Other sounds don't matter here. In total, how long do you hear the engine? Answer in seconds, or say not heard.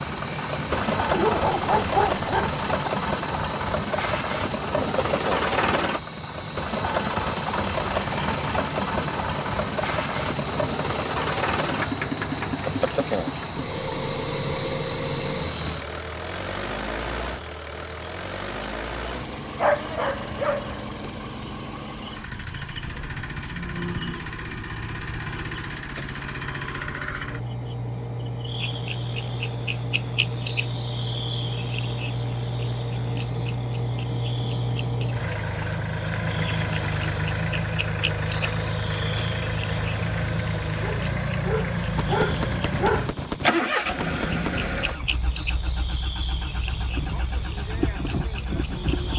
49 s.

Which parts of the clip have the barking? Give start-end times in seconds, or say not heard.
1.1-2.9, 19.6-20.9, 40.8-43.1.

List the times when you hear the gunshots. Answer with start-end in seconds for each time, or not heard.
42.0-44.7.